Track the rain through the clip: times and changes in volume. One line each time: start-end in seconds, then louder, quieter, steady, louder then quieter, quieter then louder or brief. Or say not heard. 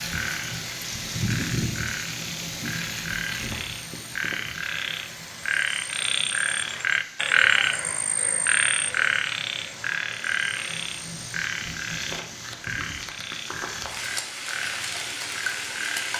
0.0-16.1 quieter then louder.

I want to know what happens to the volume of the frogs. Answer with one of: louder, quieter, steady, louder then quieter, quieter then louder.
louder then quieter.